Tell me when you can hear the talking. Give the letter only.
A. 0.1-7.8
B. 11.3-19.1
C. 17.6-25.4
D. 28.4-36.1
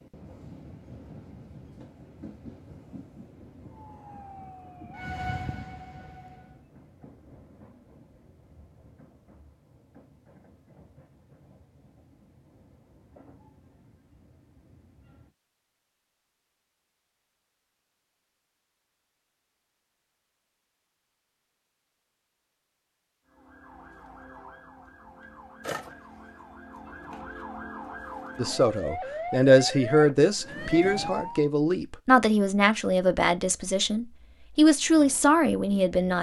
D.